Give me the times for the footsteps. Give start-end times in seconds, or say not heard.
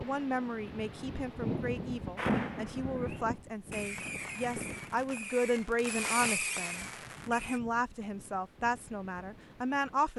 not heard.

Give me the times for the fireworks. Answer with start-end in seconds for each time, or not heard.
2.1-7.6.